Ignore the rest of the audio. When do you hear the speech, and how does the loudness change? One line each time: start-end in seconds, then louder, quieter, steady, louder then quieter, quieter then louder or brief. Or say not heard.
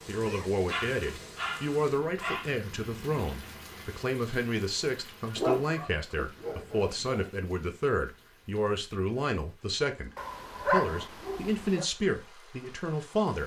0.1-13.4 steady.